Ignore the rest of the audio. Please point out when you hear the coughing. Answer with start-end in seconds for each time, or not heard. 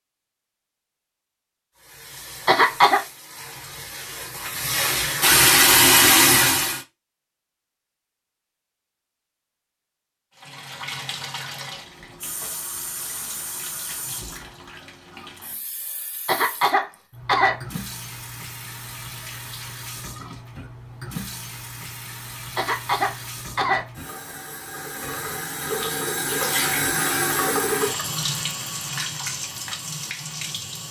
2.5-3.0, 16.2-17.6, 22.6-24.3.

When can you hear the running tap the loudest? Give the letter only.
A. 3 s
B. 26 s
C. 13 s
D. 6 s
D.